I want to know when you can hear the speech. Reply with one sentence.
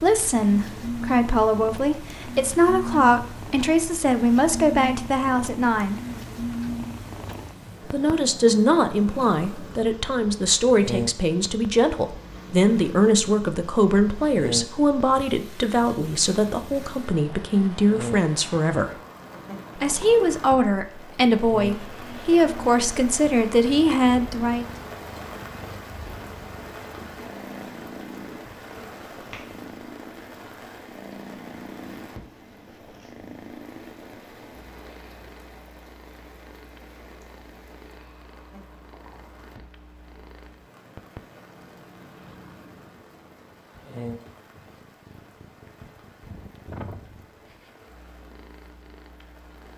You can hear the speech from 0.0 to 6.0 s, from 7.9 to 18.9 s and from 19.8 to 24.6 s.